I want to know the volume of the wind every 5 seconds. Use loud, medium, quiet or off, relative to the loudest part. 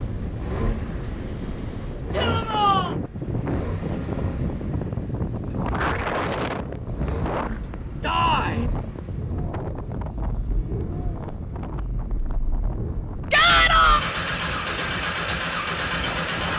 loud, loud, medium, medium.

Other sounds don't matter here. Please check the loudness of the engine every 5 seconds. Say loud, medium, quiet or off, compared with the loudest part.
medium, medium, medium, loud.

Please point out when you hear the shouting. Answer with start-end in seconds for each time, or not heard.
2.1-3.0, 8.0-8.6, 13.3-14.0.